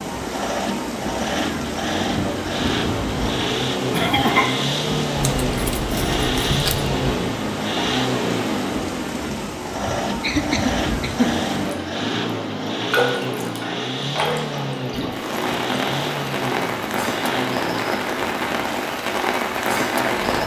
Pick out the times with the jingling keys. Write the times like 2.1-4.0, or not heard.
5.2-6.9.